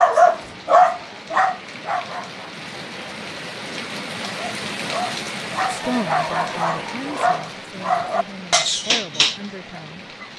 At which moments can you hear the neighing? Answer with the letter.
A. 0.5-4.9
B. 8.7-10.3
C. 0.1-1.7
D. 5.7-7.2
D.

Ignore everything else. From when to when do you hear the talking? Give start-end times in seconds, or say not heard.
5.7-10.1.